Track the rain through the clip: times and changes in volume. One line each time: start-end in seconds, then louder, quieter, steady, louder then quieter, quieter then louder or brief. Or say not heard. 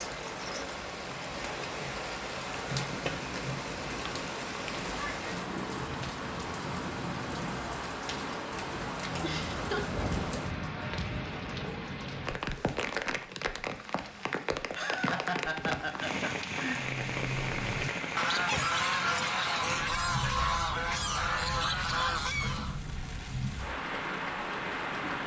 0.0-25.2 steady.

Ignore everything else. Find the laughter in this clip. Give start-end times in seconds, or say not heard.
9.2-9.8, 14.6-16.8.